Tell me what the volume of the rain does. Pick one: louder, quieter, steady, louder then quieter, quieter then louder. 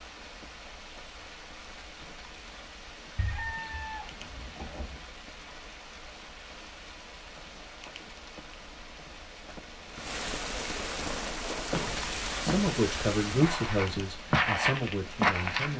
louder.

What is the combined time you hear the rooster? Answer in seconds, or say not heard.
2 s.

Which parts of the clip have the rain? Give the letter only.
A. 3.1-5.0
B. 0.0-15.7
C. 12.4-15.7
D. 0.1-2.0
B.